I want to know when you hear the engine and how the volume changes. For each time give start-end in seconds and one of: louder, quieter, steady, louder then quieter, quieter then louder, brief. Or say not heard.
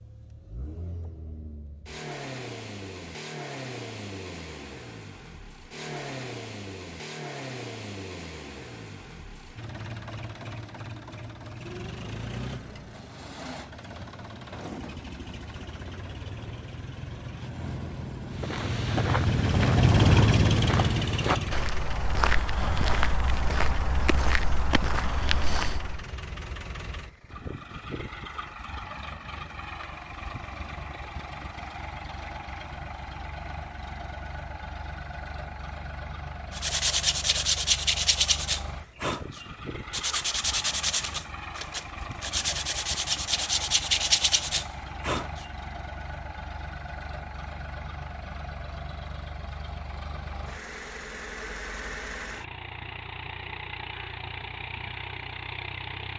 0.0-56.1 louder then quieter.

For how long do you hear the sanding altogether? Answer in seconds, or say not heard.
9 s.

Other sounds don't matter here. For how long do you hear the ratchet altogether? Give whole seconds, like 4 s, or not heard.
not heard.